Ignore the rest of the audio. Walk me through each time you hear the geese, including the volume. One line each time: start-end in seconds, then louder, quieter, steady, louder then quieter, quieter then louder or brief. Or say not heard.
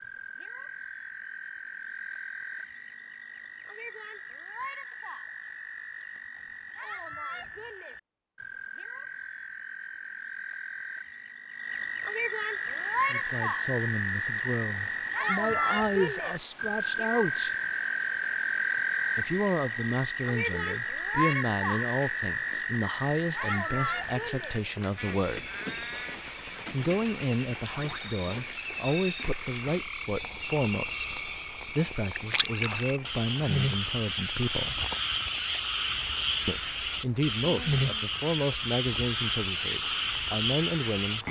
not heard.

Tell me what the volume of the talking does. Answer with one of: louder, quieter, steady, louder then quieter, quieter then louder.
steady.